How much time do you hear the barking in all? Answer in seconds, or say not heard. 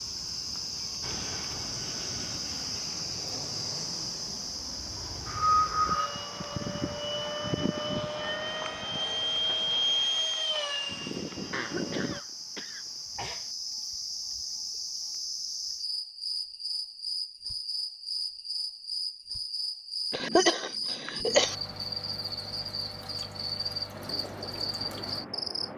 not heard.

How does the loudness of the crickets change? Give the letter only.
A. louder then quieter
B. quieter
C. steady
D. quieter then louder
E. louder
D.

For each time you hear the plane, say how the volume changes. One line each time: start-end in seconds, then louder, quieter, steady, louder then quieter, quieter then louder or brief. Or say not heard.
0.0-12.2 louder
23.9-25.7 brief.